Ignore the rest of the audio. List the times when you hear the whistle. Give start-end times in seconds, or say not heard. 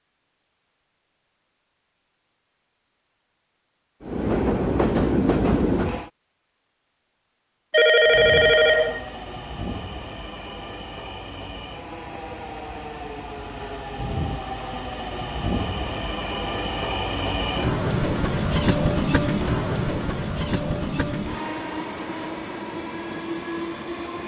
not heard.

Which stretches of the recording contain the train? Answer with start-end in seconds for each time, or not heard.
4.0-6.1, 8.0-24.2.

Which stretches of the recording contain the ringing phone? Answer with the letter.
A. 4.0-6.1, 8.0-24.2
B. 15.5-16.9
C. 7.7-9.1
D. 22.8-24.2
C.